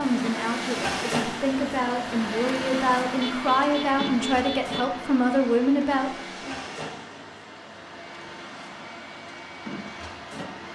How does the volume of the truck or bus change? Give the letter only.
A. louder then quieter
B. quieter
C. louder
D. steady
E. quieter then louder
B.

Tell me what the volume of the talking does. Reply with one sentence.
The volume of the talking goes up.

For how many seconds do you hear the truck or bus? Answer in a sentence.
You can hear the truck or bus for 11 seconds altogether.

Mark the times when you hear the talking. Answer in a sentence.
You can hear the talking from 0.0 to 6.5 s.